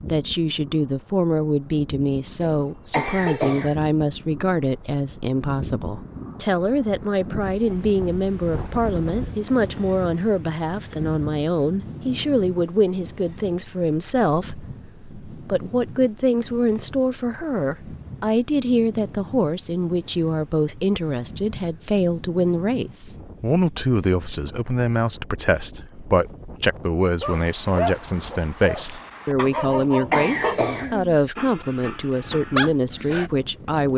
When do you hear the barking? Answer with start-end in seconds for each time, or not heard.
27.2-33.3.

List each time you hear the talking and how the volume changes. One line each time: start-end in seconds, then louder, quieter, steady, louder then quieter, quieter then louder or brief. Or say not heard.
0.1-33.9 steady.